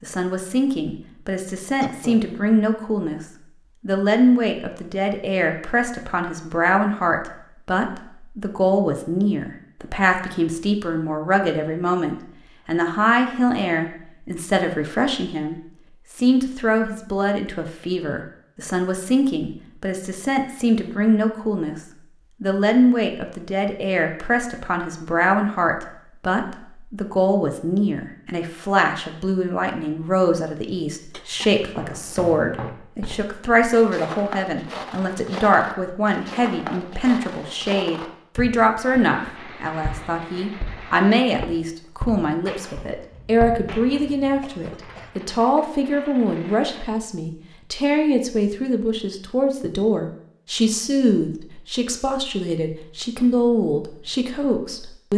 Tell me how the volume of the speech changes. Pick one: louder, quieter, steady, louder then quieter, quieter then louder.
steady.